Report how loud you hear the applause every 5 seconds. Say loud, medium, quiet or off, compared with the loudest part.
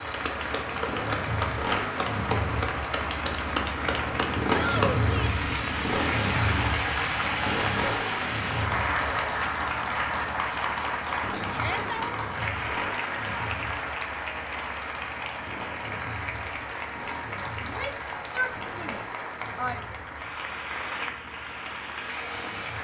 loud, loud, loud, medium, medium.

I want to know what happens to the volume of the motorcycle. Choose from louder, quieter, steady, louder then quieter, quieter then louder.
quieter.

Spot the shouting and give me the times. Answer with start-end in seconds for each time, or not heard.
4.5-5.3, 11.5-12.2, 17.6-19.8.